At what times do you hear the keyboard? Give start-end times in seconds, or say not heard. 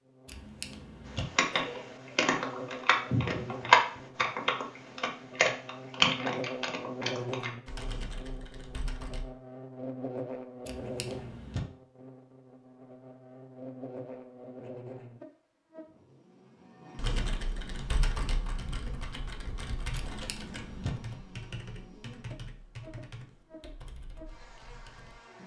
1.1-9.2, 16.9-25.1.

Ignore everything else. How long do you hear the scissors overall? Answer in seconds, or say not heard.
3 s.